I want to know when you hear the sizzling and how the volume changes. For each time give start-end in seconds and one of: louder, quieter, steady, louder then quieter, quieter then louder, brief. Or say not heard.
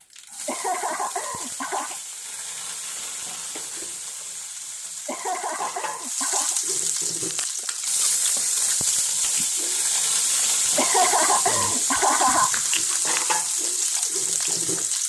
0.0-15.0 louder.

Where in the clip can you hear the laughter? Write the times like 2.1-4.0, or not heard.
0.5-2.0, 5.0-6.6, 10.8-12.6.